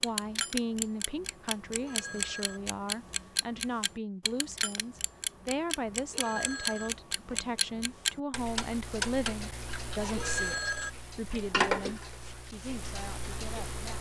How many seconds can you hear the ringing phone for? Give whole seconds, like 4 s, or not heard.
4 s.